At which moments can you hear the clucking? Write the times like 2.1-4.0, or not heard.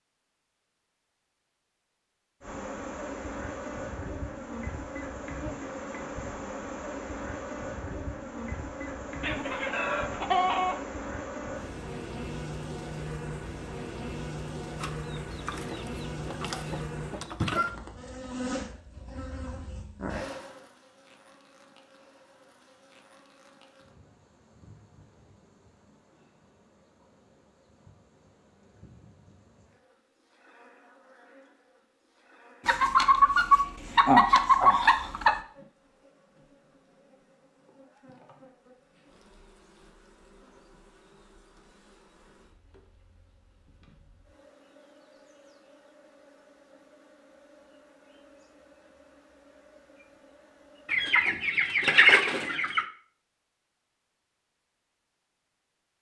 9.2-10.8, 14.8-17.8, 32.6-35.4, 50.9-52.9.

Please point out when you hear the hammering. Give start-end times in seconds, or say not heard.
not heard.